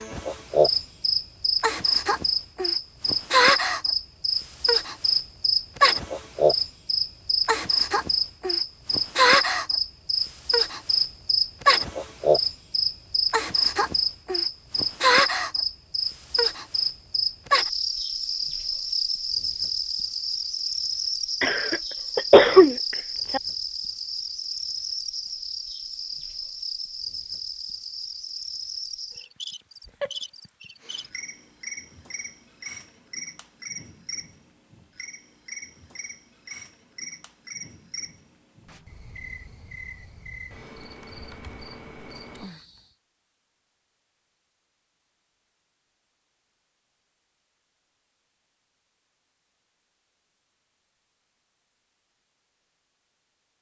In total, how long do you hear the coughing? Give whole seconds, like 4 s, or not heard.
2 s.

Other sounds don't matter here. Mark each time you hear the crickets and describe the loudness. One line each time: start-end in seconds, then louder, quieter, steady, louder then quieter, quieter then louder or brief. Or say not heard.
0.0-42.9 quieter.